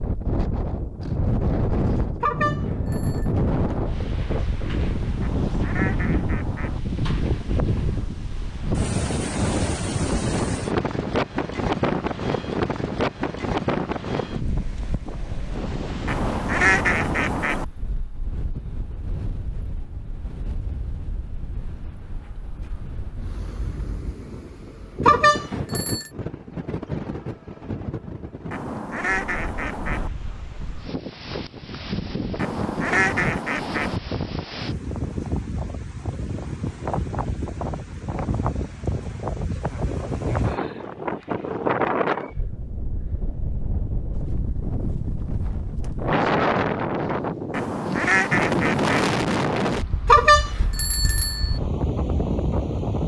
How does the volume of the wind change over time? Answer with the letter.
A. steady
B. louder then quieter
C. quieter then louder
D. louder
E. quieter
C.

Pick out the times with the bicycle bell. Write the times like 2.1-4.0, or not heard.
2.2-3.3, 25.1-26.1, 50.0-51.6.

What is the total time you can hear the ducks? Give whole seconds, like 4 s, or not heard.
8 s.